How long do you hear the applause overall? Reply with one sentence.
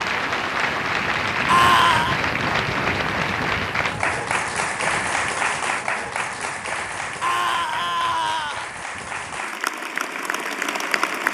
The applause can be heard for 11 seconds in total.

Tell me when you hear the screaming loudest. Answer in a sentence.
The volume of the screaming peaks at 2 seconds.